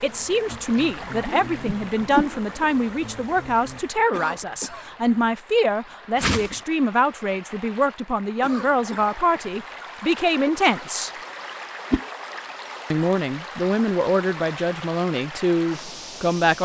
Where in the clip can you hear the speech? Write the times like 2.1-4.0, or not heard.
0.0-11.1, 12.9-16.6.